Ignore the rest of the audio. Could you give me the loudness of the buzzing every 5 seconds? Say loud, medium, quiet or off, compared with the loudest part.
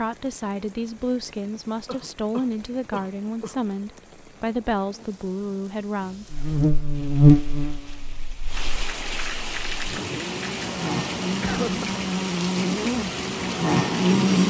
off, loud, loud.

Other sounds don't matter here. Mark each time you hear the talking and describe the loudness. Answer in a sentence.
You can hear the talking from 0.0 to 6.2 s, at a steady volume.